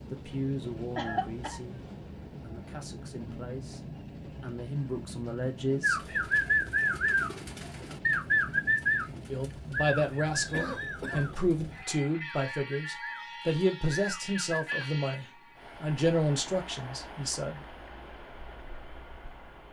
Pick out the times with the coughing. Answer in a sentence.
You can hear the coughing from 0.9 to 1.6 s, from 10.5 to 11.2 s and from 14.7 to 15.3 s.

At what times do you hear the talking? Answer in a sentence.
You can hear the talking from 0.1 to 6.2 s and from 9.3 to 17.6 s.